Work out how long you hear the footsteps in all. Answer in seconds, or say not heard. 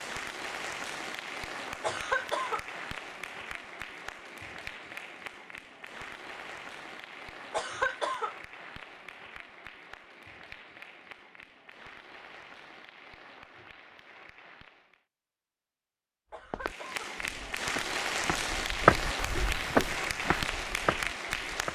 5 s.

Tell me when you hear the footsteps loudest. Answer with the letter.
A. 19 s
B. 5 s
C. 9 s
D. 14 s
A.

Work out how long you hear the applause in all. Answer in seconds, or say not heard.
20 s.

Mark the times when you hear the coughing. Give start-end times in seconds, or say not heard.
1.8-2.6, 7.5-8.3, 16.3-17.1.